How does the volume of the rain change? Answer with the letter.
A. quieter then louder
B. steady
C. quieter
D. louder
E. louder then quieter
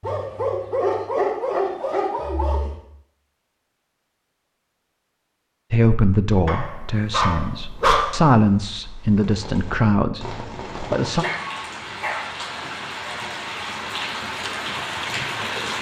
D.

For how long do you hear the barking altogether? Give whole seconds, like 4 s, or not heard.
6 s.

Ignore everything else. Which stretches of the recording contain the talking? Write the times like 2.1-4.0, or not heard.
5.7-11.2.